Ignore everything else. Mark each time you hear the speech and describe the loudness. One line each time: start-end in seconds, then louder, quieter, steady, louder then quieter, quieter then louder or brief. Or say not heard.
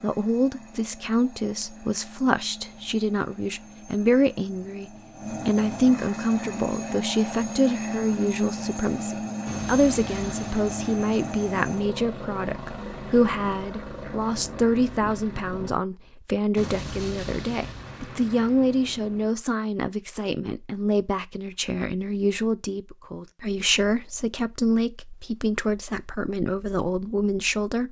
0.0-27.8 steady.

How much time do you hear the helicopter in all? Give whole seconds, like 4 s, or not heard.
16 s.